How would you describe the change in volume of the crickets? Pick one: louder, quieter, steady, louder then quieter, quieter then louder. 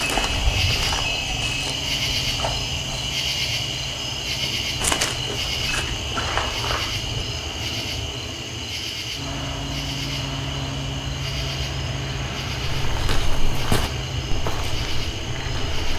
quieter.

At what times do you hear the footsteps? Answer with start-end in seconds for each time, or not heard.
0.0-3.1, 4.8-7.2, 12.7-15.8.